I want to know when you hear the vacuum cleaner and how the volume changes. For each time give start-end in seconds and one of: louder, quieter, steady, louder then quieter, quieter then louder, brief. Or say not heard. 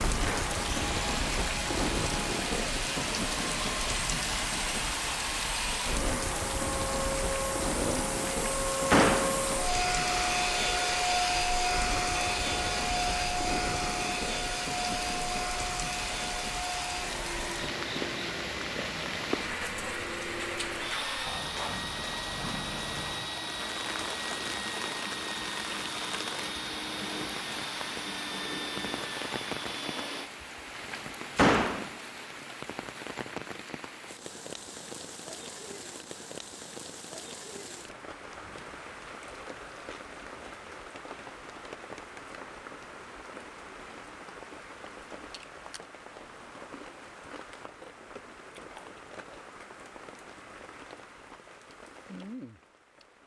0.1-30.3 louder then quieter.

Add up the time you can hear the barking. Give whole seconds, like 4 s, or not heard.
not heard.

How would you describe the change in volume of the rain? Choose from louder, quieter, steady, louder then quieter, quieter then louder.
quieter.